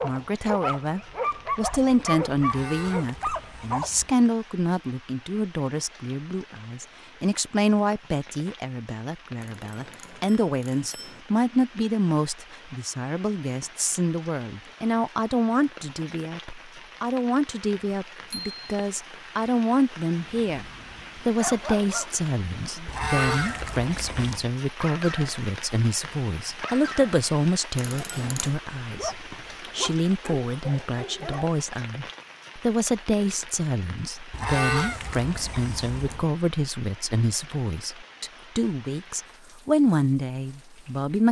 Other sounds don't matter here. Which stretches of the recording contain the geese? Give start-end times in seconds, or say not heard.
2.4-4.2, 22.9-24.5, 34.3-36.2.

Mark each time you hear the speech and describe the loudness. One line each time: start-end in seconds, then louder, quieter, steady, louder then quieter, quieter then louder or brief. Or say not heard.
0.0-41.2 steady.